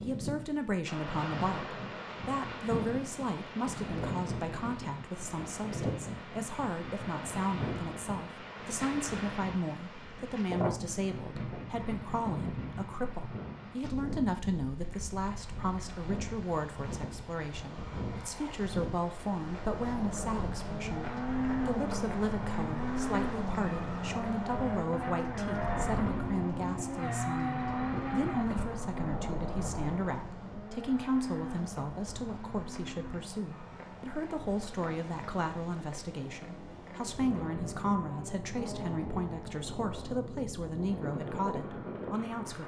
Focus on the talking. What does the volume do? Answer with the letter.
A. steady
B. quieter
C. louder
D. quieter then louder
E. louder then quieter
A.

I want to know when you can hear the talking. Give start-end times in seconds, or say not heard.
0.0-42.6.